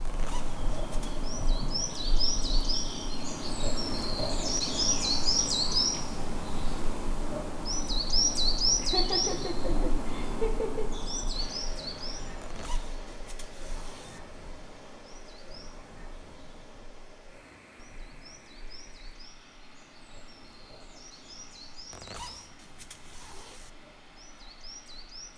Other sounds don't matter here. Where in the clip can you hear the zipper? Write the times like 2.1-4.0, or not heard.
0.0-1.2, 12.4-14.2, 21.9-23.7.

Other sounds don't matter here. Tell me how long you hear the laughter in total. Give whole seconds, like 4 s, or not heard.
2 s.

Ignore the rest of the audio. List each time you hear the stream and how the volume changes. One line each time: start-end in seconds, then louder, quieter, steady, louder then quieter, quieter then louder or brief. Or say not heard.
11.3-25.3 quieter.